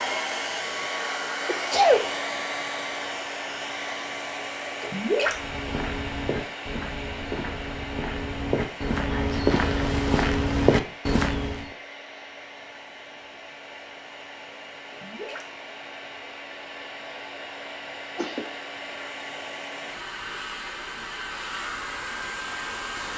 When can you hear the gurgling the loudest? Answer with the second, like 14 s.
5 s.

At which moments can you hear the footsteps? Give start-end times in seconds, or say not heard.
5.3-11.7.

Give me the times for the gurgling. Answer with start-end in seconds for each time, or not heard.
4.8-5.3, 14.9-15.4.